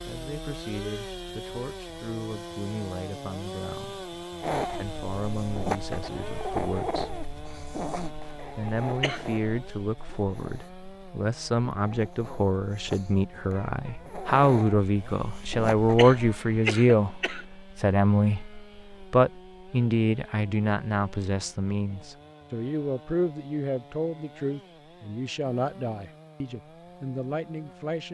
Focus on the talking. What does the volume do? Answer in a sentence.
The volume of the talking goes up, then down.